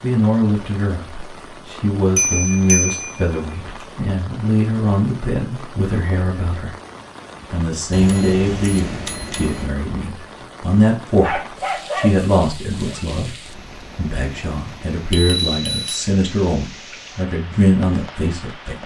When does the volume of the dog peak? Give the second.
12 s.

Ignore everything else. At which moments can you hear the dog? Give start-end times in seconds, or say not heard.
11.2-13.1.